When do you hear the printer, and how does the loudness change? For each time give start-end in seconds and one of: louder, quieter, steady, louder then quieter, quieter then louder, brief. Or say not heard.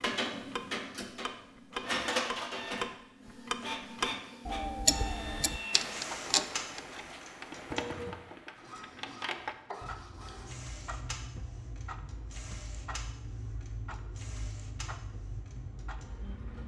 0.0-16.6 quieter.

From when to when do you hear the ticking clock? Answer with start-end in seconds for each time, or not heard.
0.0-16.6.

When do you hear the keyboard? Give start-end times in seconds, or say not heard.
not heard.